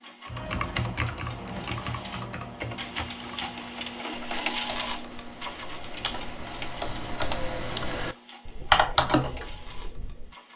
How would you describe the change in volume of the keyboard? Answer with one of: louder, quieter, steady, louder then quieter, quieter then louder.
quieter then louder.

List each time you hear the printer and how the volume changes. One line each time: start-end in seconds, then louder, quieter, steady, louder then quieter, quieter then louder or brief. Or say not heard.
0.0-10.5 louder then quieter.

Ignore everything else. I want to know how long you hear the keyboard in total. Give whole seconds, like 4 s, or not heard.
10 s.